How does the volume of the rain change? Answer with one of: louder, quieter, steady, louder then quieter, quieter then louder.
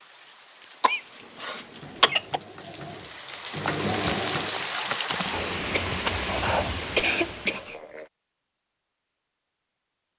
louder.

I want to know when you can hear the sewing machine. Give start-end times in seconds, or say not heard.
1.6-4.7.